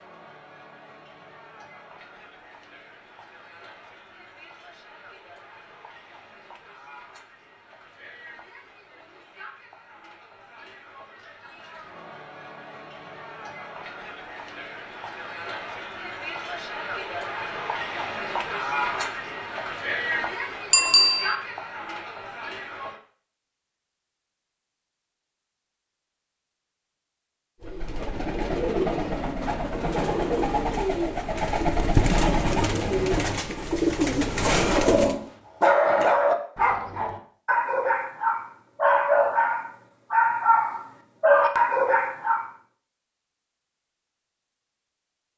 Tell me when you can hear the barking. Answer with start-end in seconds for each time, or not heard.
34.6-42.5.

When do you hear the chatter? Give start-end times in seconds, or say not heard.
0.0-23.0.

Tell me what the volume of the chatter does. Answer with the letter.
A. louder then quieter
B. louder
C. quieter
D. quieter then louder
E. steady
B.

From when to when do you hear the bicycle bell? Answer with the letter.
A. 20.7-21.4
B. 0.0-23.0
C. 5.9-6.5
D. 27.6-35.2
A.